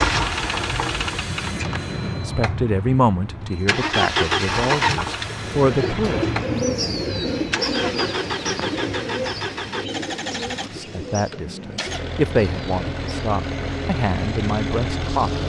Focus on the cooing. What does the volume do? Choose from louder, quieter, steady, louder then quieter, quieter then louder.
quieter.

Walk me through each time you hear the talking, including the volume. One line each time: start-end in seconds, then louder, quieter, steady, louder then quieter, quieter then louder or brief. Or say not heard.
2.1-6.2 quieter then louder
10.6-15.4 louder then quieter.